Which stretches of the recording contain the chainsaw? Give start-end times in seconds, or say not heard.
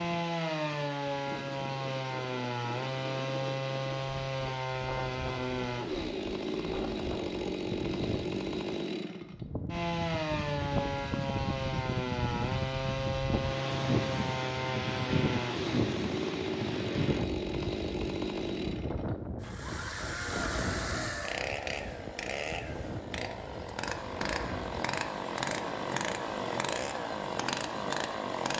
0.0-28.5.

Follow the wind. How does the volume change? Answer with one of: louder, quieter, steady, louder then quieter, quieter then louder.
louder then quieter.